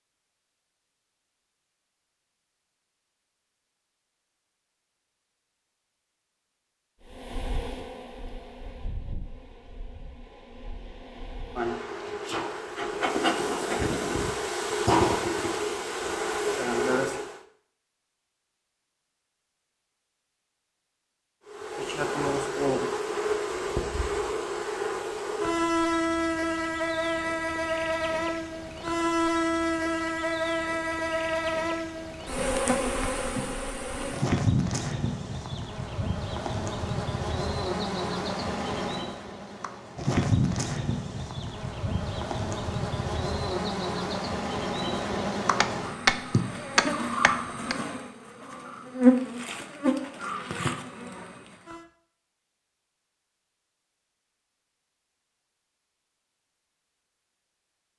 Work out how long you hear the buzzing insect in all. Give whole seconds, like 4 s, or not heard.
41 s.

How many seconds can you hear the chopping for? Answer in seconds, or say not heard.
2 s.